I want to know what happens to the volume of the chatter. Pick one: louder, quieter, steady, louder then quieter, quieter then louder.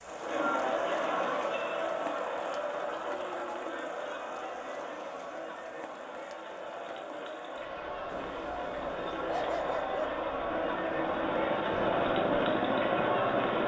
quieter then louder.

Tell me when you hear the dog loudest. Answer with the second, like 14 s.
9 s.